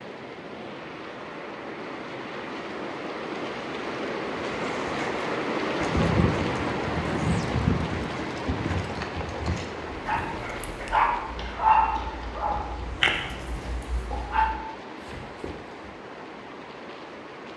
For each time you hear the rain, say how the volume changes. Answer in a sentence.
You can hear the rain from 0.0 to 17.5 s, getting louder then quieter.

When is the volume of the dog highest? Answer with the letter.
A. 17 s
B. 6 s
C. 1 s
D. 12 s
D.